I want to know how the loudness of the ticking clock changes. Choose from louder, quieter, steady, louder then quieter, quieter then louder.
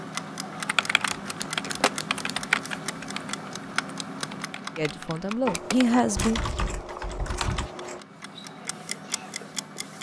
quieter then louder.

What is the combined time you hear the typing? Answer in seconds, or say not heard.
7 s.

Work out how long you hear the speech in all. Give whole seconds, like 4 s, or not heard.
2 s.